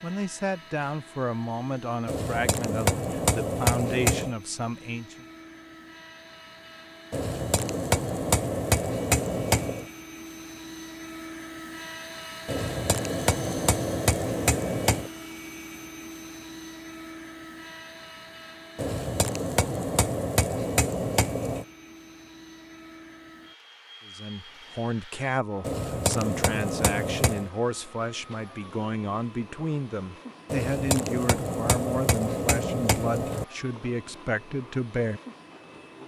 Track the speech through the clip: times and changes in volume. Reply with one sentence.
The speech can be heard from 0.0 to 5.2 s, at a steady volume; and from 24.1 to 35.2 s, at a steady volume.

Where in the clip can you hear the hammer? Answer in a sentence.
The hammer can be heard from 2.0 to 4.3 s, from 7.1 to 9.8 s, from 12.4 to 15.1 s, from 18.8 to 21.6 s, from 25.6 to 27.5 s and from 30.5 to 33.5 s.